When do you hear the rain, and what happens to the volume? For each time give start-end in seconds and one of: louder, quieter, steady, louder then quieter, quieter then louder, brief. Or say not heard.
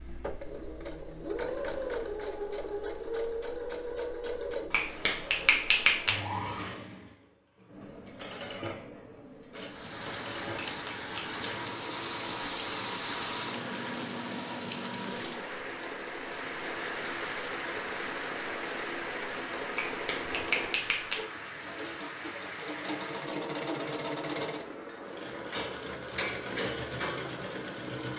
9.5-28.1 quieter.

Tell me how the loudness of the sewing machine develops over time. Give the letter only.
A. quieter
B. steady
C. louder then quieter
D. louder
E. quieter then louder
E.